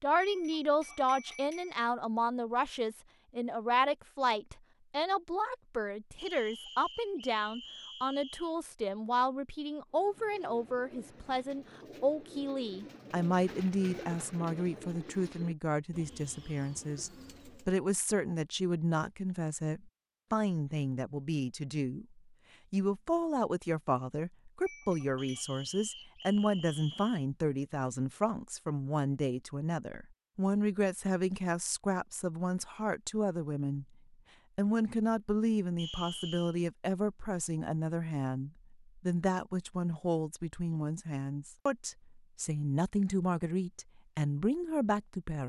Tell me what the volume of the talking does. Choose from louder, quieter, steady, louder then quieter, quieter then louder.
steady.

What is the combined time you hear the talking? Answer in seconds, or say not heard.
45 s.